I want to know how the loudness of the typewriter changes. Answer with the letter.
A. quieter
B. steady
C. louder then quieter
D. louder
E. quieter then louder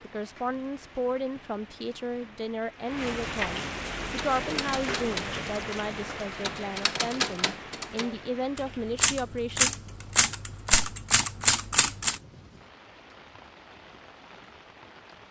D.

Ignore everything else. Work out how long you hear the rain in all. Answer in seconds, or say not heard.
15 s.